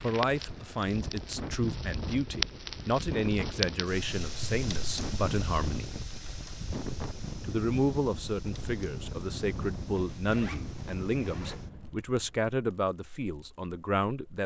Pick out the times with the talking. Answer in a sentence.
The talking can be heard from 0.0 to 6.0 s and from 7.4 to 14.4 s.